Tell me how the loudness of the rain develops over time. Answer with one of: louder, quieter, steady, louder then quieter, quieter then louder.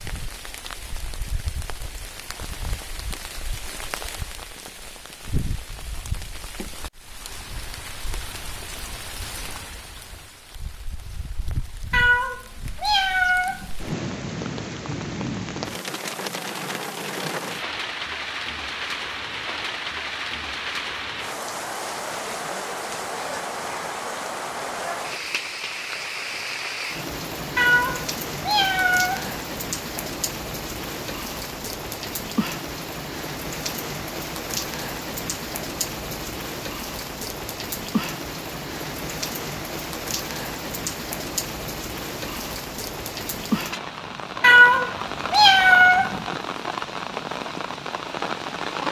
louder.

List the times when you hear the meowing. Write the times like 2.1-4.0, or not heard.
11.9-13.7, 27.6-29.4, 44.4-46.2.